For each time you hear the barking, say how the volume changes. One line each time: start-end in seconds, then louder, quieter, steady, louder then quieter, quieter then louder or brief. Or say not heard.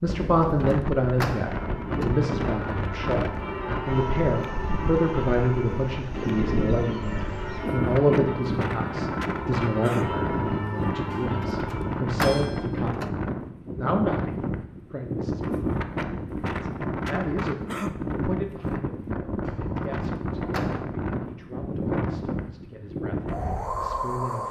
not heard.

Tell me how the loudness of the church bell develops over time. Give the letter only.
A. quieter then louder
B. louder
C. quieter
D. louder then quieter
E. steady
E.